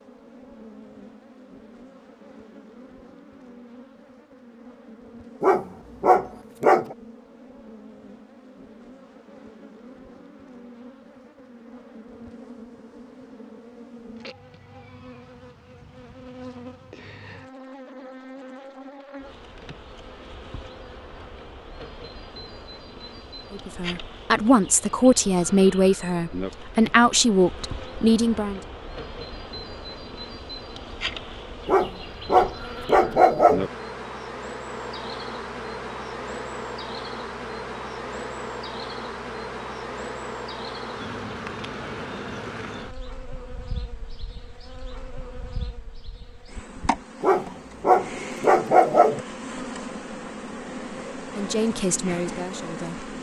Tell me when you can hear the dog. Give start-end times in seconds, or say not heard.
5.4-7.0, 31.6-33.7, 47.2-49.2.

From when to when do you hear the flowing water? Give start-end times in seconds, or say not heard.
not heard.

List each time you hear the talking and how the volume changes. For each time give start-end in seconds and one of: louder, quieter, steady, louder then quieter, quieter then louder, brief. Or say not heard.
23.5-28.6 steady
51.4-53.0 brief.